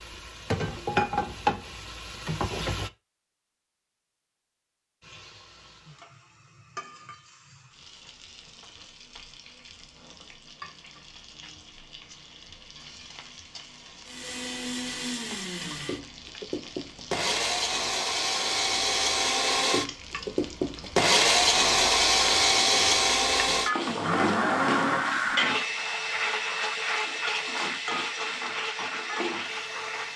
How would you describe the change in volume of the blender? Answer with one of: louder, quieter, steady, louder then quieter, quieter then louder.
louder then quieter.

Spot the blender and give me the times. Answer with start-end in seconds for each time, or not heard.
14.1-30.1.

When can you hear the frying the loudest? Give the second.
1 s.